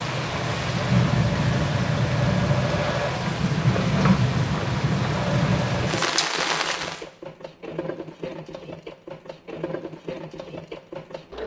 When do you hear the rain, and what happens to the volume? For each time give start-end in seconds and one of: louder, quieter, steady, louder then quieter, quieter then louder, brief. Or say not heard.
0.0-7.0 steady.